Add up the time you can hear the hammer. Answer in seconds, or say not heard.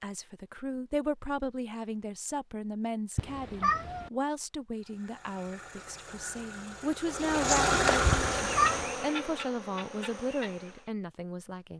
not heard.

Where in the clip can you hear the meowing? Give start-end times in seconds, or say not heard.
3.1-4.1, 8.1-8.9.